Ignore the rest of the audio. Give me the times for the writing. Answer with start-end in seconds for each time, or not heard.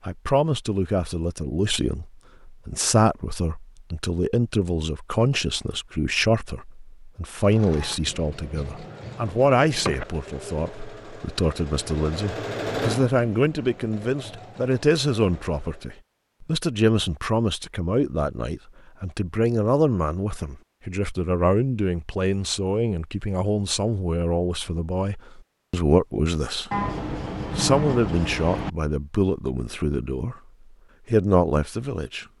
8.1-10.1, 26.7-28.7.